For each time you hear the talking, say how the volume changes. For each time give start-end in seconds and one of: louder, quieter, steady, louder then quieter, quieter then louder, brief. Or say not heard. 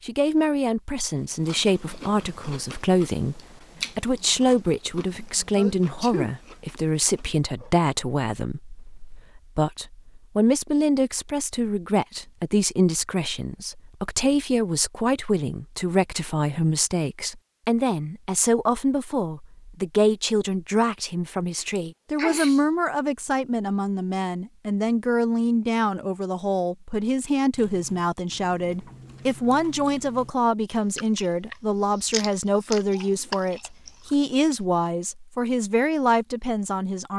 0.0-37.1 steady.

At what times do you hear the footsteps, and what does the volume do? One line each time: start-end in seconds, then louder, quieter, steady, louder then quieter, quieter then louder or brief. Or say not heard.
not heard.